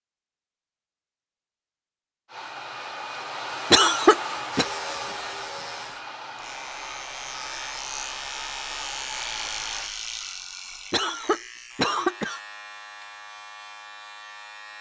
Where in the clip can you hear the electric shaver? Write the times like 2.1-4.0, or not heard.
4.5-14.7.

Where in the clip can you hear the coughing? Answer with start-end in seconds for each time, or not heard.
3.7-4.7, 10.9-12.4.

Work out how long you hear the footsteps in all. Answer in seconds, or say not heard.
not heard.